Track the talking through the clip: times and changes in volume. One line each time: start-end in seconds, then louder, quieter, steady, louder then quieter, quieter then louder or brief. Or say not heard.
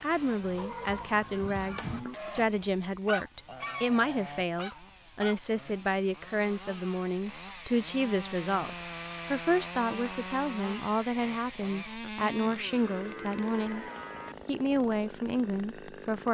0.0-13.8 steady
14.4-16.2 brief.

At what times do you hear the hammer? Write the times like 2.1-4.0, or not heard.
not heard.